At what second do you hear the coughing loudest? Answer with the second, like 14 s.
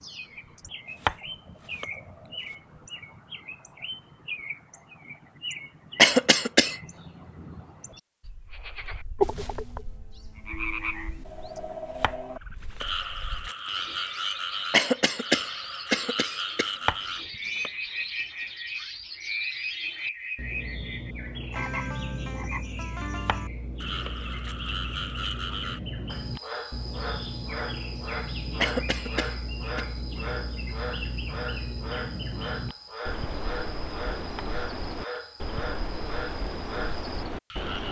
6 s.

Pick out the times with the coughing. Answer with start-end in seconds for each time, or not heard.
6.0-6.8, 14.7-16.7, 28.6-29.9.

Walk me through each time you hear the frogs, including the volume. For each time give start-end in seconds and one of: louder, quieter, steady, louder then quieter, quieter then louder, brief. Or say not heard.
8.5-37.8 quieter.